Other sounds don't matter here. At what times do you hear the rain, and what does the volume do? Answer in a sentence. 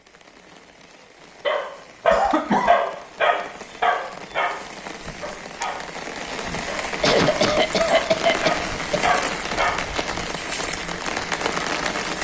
The rain can be heard from 0.0 to 12.1 s, getting louder.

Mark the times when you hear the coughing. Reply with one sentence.
The coughing can be heard from 2.1 to 2.8 s and from 7.0 to 9.0 s.